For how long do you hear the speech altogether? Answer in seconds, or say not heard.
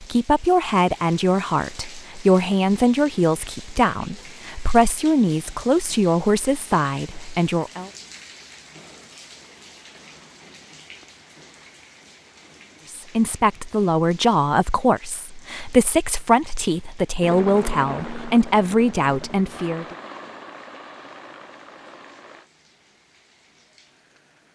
15 s.